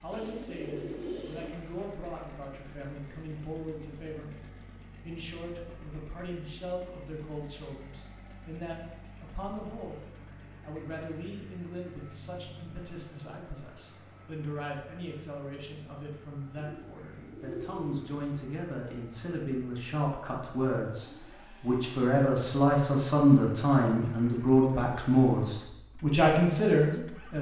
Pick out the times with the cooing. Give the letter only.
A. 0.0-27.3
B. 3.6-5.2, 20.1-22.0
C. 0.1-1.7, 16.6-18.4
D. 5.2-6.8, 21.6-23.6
C.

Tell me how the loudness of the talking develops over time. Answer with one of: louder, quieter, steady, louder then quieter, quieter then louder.
louder.